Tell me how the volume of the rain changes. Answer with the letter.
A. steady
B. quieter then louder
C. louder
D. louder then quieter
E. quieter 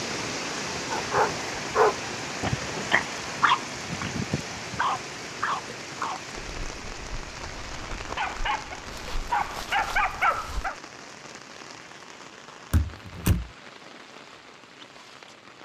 E.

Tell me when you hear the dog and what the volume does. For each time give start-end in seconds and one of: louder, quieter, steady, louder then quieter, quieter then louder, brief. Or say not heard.
0.9-10.8 quieter then louder.